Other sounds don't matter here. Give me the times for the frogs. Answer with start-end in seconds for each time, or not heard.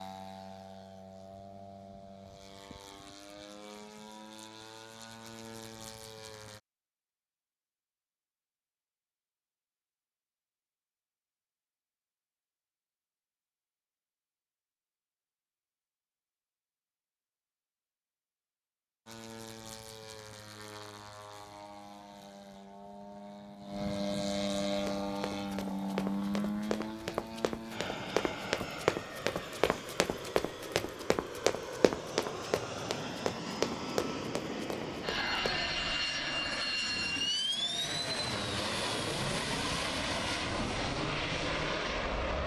not heard.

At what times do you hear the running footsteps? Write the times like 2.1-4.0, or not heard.
24.8-35.6.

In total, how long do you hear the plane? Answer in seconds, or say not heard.
30 s.